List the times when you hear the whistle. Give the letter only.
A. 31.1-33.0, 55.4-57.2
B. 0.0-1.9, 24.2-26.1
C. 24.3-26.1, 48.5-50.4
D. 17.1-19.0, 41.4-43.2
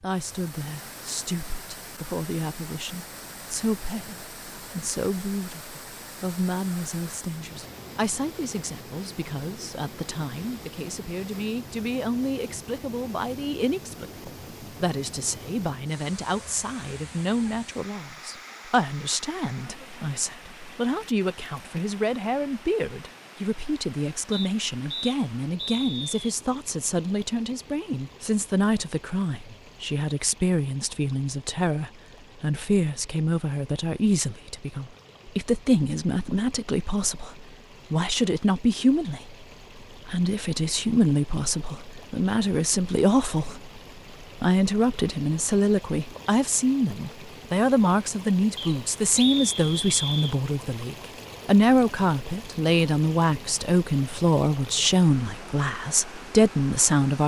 C.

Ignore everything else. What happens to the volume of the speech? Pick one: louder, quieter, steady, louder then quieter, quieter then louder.
louder.